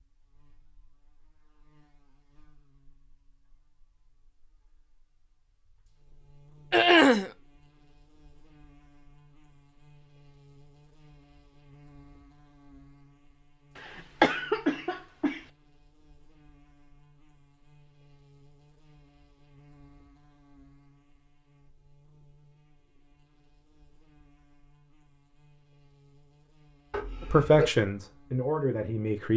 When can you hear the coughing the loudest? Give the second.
7 s.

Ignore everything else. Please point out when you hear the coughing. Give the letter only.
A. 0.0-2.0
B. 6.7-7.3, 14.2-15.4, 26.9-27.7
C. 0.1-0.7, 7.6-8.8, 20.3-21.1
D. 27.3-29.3
B.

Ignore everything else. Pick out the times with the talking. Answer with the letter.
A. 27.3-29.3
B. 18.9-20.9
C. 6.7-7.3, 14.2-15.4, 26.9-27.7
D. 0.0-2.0
A.